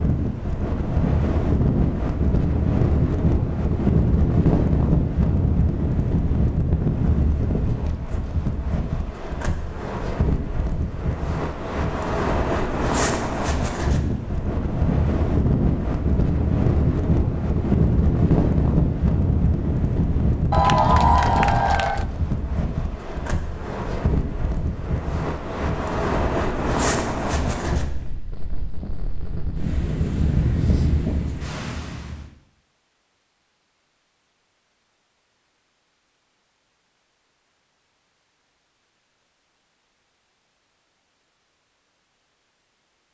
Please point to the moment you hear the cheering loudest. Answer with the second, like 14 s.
21 s.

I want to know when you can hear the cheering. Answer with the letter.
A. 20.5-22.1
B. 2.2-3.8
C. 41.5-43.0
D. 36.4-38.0
A.